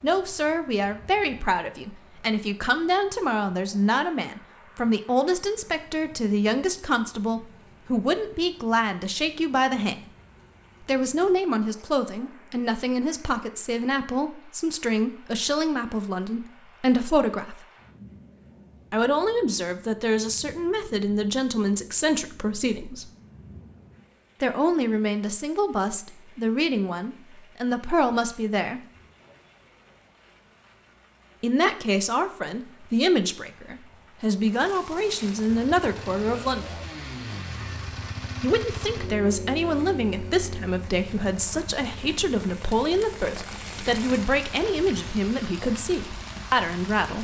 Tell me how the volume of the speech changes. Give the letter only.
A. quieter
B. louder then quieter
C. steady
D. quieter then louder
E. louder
C.